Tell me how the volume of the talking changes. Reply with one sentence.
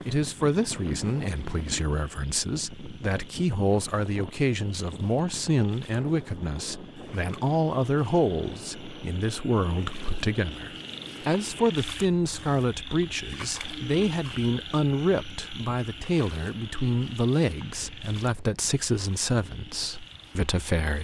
The loudness of the talking stays about the same.